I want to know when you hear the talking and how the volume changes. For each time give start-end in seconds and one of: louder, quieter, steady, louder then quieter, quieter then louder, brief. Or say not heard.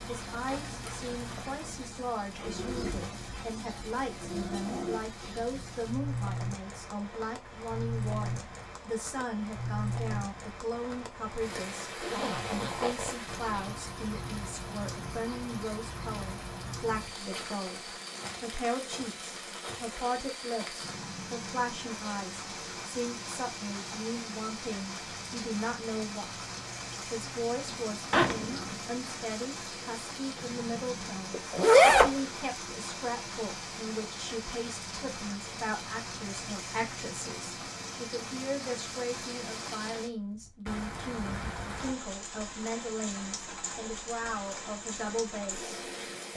0.1-26.4 steady
27.1-46.3 steady.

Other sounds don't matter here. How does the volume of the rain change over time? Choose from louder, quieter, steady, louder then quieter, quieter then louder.
steady.